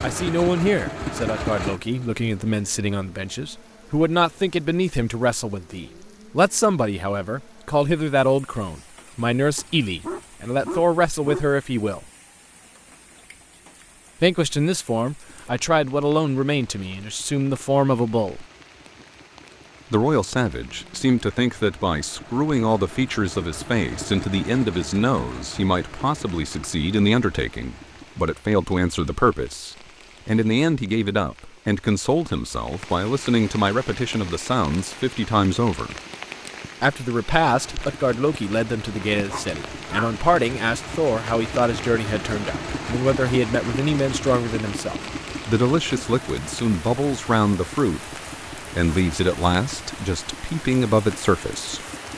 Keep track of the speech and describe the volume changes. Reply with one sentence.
The volume of the speech stays about the same.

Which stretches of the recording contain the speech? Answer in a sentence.
The speech can be heard from 0.0 to 12.1 s, from 14.2 to 18.4 s, from 19.9 to 36.0 s and from 36.8 to 51.8 s.